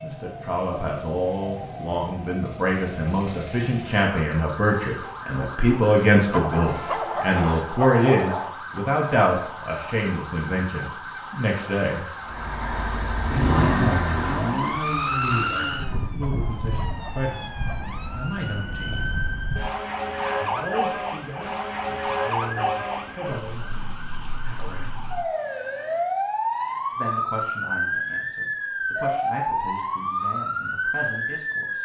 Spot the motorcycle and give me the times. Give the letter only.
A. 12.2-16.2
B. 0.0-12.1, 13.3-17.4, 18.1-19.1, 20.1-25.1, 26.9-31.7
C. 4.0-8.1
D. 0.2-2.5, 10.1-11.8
A.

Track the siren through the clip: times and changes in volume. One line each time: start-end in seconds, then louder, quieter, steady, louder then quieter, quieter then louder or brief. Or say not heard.
0.0-31.7 louder.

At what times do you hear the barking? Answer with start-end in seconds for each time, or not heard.
6.3-8.6, 16.2-17.9.